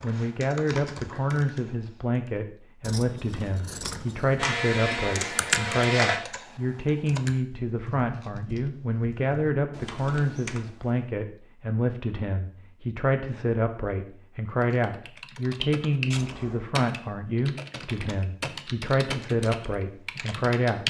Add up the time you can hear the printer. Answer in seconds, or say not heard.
2 s.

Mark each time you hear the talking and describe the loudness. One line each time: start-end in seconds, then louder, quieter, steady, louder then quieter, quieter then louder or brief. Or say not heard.
0.0-20.8 steady.